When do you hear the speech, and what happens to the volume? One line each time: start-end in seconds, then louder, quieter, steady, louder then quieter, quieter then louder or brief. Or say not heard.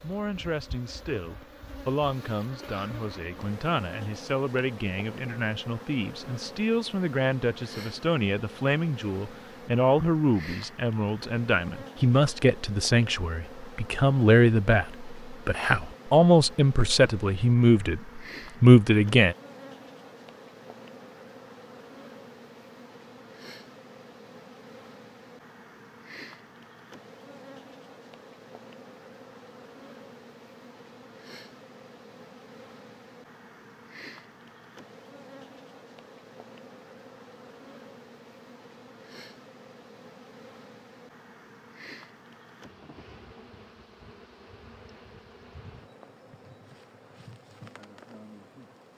0.0-19.4 louder.